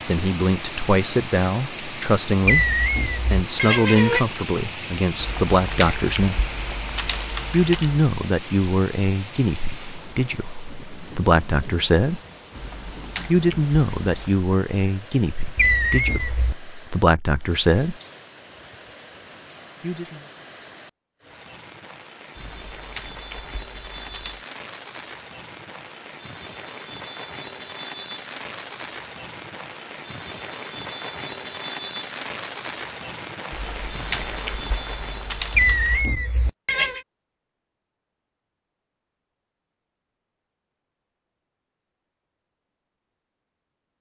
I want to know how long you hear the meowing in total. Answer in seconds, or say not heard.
4 s.